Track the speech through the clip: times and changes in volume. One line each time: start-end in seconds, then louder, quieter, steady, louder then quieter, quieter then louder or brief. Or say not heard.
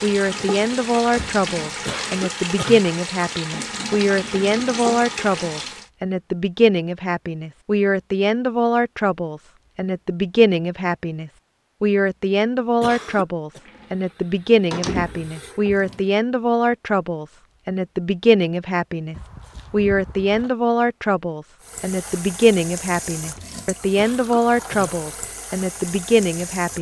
0.0-26.7 steady.